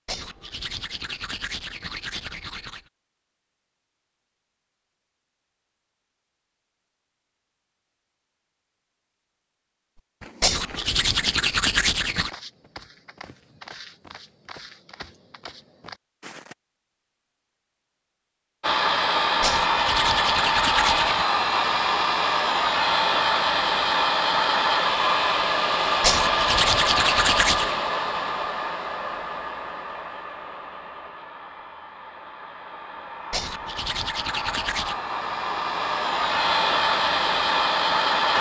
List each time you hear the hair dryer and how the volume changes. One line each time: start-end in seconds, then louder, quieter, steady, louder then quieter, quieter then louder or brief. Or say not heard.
18.6-38.3 quieter then louder.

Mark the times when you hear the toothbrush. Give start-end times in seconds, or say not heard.
0.1-2.8, 10.4-12.3, 19.4-21.2, 26.0-27.8, 33.3-35.0.